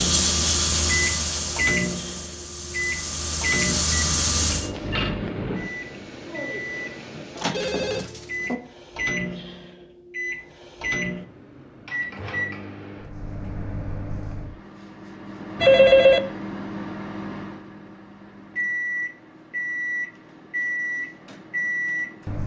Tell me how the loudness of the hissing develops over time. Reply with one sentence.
The volume of the hissing goes down, then up.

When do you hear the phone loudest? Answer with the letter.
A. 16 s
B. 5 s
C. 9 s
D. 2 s
A.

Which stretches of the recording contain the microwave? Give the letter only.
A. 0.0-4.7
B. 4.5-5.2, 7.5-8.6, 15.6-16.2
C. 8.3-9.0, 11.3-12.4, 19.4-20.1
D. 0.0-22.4
D.